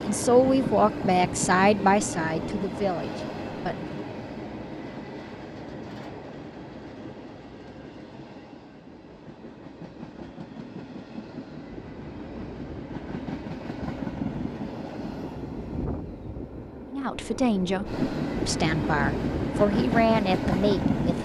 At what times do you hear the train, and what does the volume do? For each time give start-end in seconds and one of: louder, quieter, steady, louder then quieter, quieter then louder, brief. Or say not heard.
0.0-21.2 quieter then louder.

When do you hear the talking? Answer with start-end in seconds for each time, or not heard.
0.1-3.9, 16.9-21.2.